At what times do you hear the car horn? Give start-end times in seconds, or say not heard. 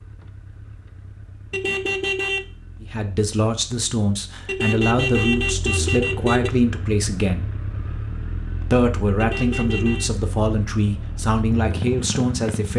1.5-2.5, 4.5-6.5, 9.2-10.1.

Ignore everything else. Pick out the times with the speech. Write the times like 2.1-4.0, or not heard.
2.8-7.5, 8.7-12.7.